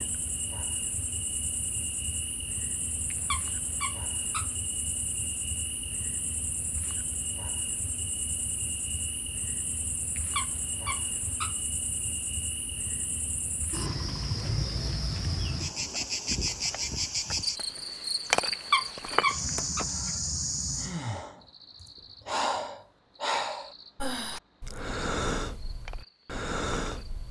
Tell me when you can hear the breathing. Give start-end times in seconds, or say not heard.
19.9-27.2.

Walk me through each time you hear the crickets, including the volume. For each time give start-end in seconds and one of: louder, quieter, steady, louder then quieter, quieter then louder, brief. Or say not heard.
0.0-27.2 louder then quieter.